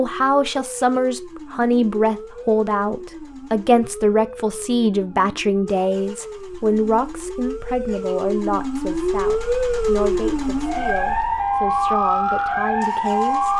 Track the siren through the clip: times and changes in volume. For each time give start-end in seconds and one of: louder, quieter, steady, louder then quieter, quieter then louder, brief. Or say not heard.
0.0-13.5 louder.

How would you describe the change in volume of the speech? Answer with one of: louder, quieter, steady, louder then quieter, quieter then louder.
quieter.